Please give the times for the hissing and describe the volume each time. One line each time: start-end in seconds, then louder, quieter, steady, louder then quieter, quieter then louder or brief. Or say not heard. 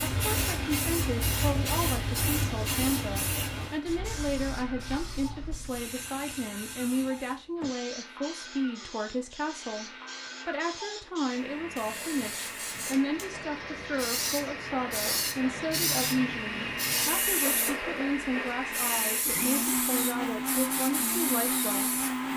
0.0-22.1 quieter then louder.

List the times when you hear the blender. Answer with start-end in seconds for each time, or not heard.
0.0-22.3.